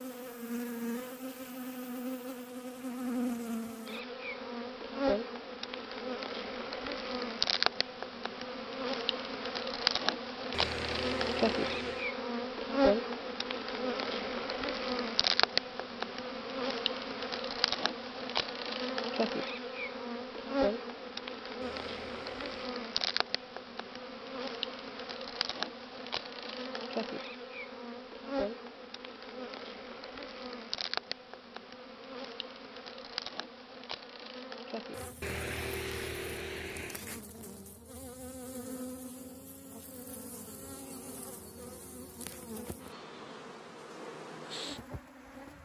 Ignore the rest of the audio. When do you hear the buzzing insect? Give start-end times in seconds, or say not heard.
0.0-45.6.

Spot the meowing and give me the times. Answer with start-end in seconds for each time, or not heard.
10.5-12.1, 21.6-22.7, 35.2-37.0.